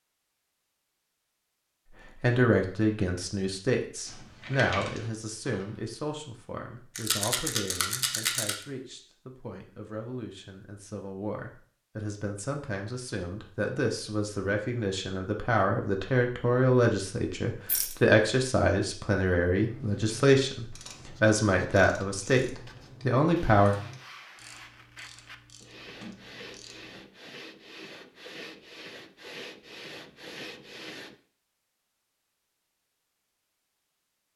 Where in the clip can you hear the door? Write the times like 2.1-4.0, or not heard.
26.0-27.1.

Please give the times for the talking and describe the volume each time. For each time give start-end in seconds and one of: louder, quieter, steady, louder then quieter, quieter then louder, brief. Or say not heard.
2.2-23.8 quieter then louder.